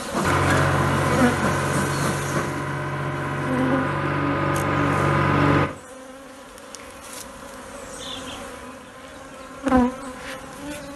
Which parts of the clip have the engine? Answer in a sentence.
You can hear the engine from 0.1 to 5.7 s.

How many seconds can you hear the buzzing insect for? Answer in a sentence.
The buzzing insect can be heard for 11 seconds in total.